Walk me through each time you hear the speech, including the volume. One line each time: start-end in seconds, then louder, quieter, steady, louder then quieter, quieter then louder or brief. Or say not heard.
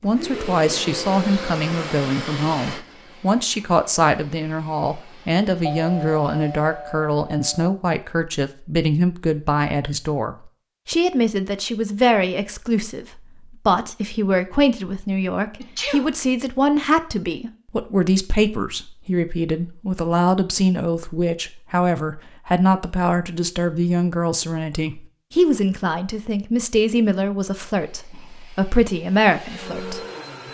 0.0-30.0 steady.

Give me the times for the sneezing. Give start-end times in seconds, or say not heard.
15.6-16.1.